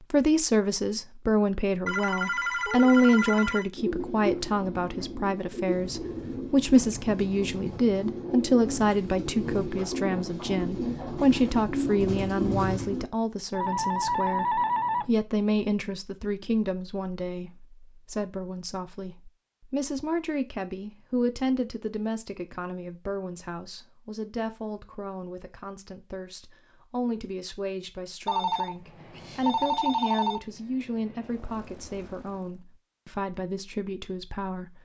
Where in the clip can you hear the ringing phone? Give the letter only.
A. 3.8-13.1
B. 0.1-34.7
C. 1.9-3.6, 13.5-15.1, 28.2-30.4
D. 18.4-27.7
C.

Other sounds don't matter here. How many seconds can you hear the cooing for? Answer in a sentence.
The cooing can be heard for 9 seconds in total.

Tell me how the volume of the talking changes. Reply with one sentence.
The loudness of the talking goes down.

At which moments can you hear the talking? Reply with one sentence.
The talking can be heard from 0.1 to 34.7 s.